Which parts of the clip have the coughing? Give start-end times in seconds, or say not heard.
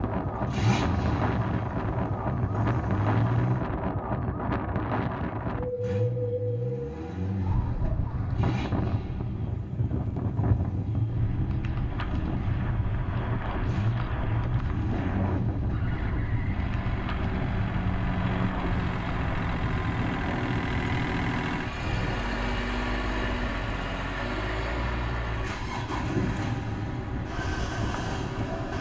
not heard.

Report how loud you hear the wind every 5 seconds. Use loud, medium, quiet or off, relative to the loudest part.
loud, loud, loud, loud, medium, medium.